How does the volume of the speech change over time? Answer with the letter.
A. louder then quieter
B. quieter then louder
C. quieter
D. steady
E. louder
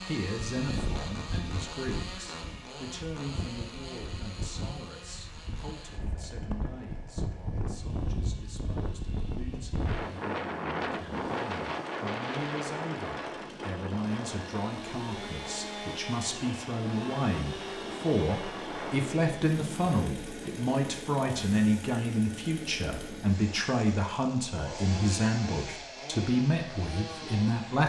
B.